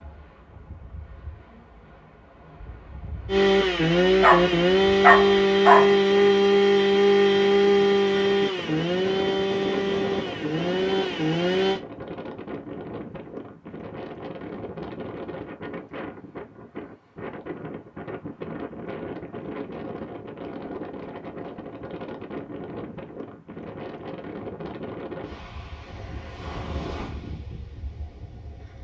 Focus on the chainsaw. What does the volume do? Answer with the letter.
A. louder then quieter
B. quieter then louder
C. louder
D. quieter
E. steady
D.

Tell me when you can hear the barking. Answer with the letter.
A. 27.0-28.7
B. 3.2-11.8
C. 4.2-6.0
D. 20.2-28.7
C.